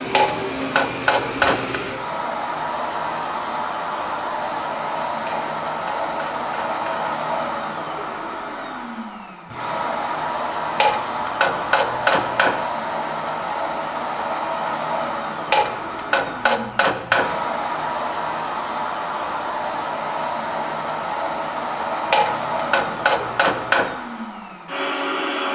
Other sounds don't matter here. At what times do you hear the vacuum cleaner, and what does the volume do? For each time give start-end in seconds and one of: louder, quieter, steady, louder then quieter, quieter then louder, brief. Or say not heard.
0.0-25.4 steady.